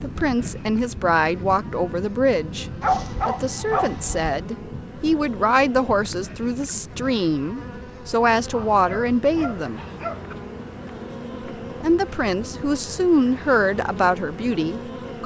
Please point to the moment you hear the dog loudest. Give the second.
3 s.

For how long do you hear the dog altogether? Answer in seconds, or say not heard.
3 s.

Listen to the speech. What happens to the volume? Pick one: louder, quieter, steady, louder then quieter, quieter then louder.
steady.